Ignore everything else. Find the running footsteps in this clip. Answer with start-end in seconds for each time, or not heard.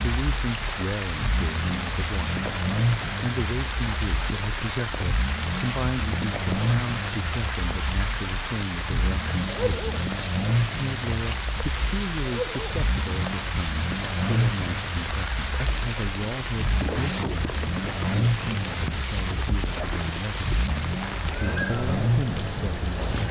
not heard.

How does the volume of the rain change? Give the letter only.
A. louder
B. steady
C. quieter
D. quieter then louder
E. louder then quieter
B.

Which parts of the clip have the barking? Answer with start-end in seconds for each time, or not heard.
9.4-10.1, 12.2-12.8.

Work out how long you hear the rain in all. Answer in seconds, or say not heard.
23 s.